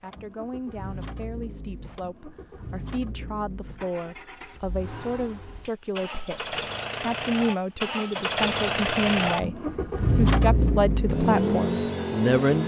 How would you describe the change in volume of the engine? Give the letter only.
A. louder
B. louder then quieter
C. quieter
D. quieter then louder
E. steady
A.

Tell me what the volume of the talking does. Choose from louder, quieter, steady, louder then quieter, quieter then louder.
louder.